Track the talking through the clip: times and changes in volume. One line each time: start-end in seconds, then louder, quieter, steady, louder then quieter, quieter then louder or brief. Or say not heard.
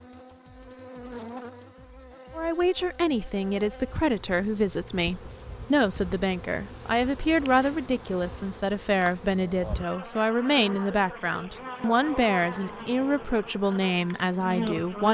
2.4-15.0 steady.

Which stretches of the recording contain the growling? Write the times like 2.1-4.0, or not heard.
not heard.